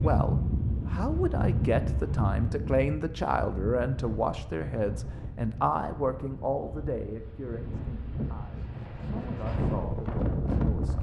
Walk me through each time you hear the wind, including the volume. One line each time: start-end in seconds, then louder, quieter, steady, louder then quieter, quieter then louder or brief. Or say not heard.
0.0-10.9 quieter then louder.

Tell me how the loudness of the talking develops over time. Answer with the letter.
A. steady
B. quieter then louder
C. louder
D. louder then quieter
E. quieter
E.